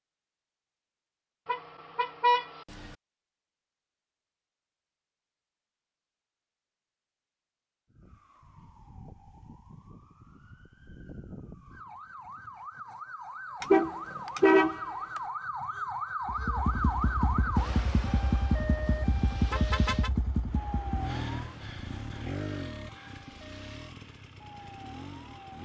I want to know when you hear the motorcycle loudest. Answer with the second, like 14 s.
18 s.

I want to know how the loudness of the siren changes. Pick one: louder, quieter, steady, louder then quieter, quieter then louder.
louder then quieter.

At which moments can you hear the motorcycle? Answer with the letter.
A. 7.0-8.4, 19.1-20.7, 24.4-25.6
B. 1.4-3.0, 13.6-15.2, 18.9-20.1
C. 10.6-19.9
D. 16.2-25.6
D.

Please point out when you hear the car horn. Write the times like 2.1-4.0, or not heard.
1.4-3.0, 13.6-15.2, 18.9-20.1.